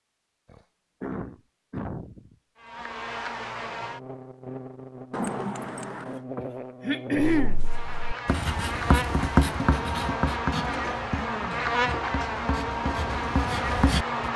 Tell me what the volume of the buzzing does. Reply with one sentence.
The volume of the buzzing goes up.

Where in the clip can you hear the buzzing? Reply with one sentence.
The buzzing can be heard from 2.6 to 14.3 s.